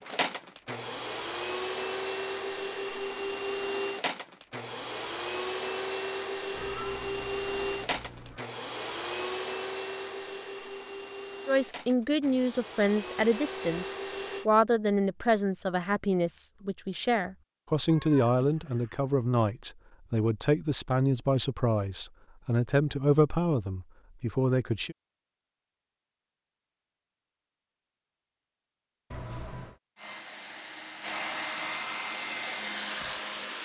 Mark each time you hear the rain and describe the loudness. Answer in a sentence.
The rain can't be heard in this clip.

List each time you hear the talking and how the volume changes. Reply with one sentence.
The talking can be heard from 11.4 to 24.9 s, at a steady volume.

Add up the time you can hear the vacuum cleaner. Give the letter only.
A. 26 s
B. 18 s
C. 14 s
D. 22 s
B.